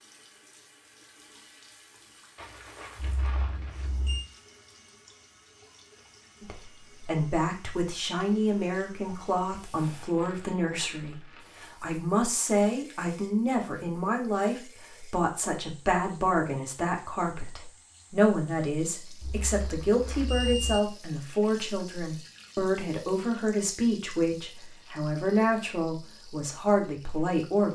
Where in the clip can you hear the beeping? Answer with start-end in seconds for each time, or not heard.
3.0-4.3, 19.2-20.8.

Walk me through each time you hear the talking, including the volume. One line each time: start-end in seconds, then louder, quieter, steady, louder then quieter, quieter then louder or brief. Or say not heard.
6.4-27.7 steady.